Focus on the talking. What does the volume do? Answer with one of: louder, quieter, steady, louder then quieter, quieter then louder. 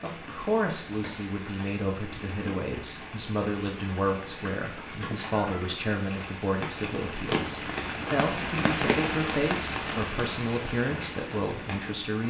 steady.